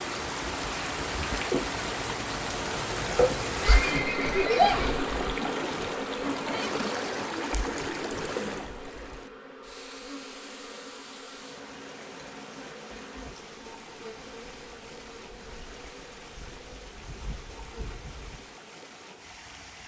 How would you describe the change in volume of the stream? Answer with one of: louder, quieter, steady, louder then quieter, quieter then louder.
quieter.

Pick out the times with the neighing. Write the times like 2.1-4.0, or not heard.
3.6-5.0.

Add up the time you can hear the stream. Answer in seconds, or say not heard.
20 s.